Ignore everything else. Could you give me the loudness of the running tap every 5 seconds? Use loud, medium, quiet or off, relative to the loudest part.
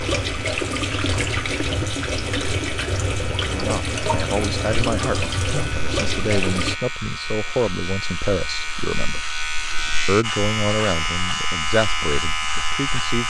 loud, loud, off.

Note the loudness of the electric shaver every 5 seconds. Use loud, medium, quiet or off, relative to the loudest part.
medium, medium, loud.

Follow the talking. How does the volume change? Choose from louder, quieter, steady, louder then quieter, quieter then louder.
steady.